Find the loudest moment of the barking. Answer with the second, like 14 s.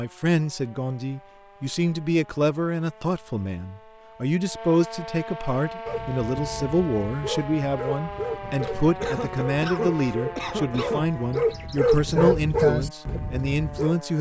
13 s.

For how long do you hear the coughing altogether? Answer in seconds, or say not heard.
2 s.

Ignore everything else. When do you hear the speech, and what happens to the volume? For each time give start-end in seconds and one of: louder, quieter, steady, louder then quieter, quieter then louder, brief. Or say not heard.
0.0-14.1 steady.